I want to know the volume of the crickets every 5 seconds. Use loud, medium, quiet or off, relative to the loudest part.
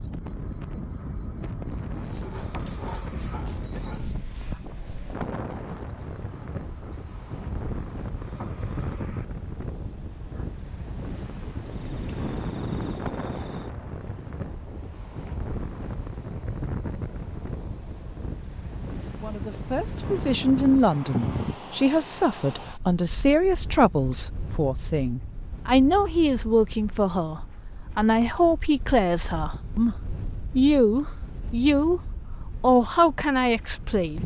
medium, medium, loud, loud, off, off, off.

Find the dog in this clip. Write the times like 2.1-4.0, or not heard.
1.7-7.2.